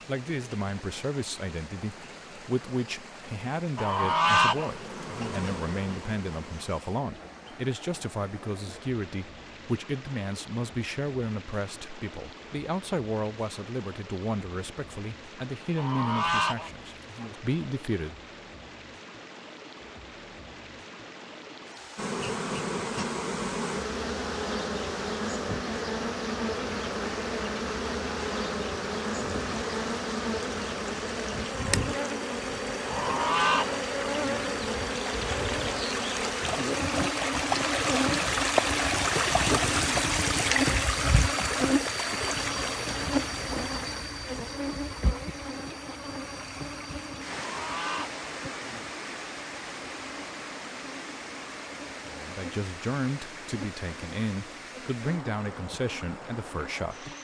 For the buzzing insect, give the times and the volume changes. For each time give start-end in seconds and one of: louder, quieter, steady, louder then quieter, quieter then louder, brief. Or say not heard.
0.0-6.8 louder
21.9-57.1 quieter.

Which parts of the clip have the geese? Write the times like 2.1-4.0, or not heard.
3.8-5.3, 15.8-17.4, 32.9-34.5, 47.3-48.9.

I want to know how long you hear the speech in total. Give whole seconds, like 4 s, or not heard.
23 s.